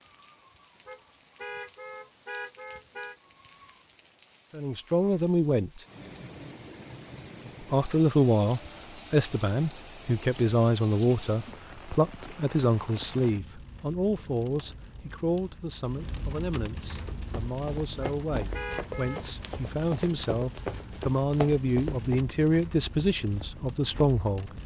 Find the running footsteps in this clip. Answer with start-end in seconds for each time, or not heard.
16.9-22.2.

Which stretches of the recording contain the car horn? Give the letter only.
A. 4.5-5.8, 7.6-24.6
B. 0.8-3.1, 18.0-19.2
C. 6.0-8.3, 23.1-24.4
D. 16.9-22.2
B.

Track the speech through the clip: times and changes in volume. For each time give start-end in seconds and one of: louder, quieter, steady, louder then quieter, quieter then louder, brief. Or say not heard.
4.5-5.8 brief
7.6-24.6 quieter then louder.